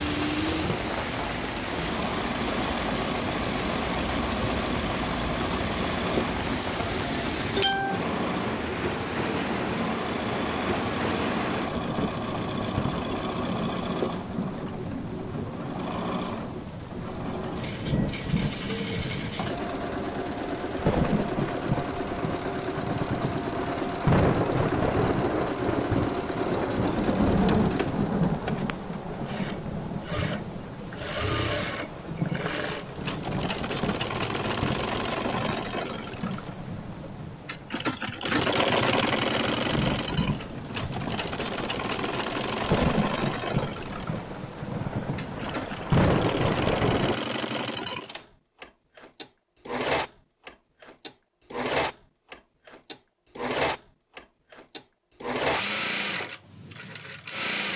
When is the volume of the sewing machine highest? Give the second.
39 s.